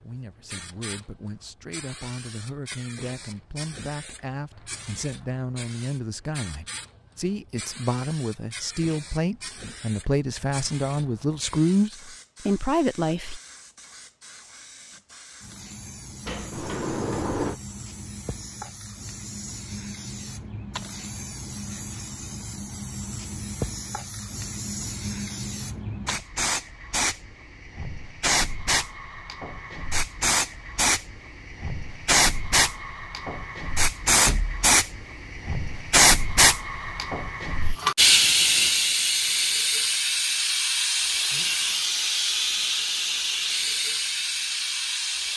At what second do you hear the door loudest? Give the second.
17 s.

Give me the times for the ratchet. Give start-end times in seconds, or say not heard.
not heard.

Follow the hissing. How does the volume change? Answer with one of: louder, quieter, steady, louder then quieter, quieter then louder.
louder.